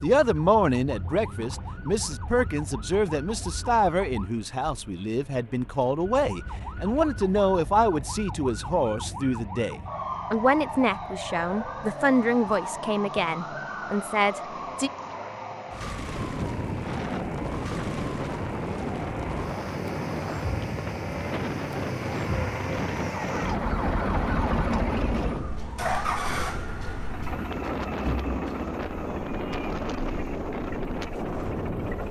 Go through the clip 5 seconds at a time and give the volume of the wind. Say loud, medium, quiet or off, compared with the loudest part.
off, off, off, loud, loud, loud, loud.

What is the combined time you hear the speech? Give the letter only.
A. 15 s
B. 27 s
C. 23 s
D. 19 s
A.